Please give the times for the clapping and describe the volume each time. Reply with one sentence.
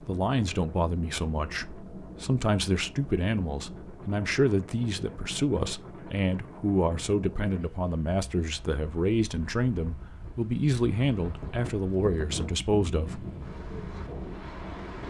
The clapping can't be heard in this clip.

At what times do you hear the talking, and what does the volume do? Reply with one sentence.
The talking can be heard from 0.0 to 13.2 s, at a steady volume.